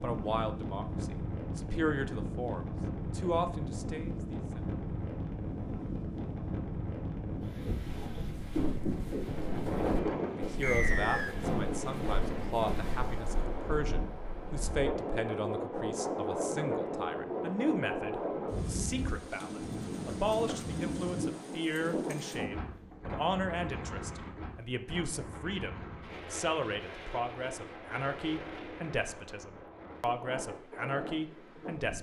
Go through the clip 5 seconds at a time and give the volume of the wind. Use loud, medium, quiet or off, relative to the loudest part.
loud, loud, loud, loud, loud, medium, medium.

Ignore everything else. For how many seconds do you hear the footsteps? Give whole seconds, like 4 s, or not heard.
6 s.